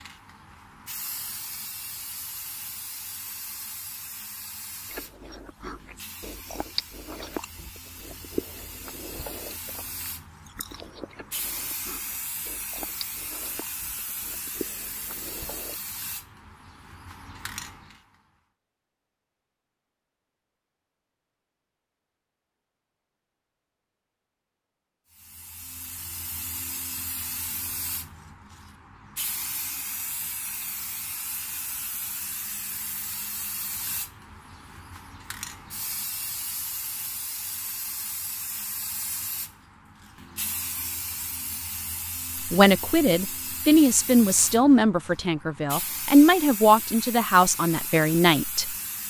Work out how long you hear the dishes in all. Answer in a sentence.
The dishes can't be heard in this clip.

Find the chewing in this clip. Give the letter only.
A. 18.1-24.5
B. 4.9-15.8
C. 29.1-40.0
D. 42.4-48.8
B.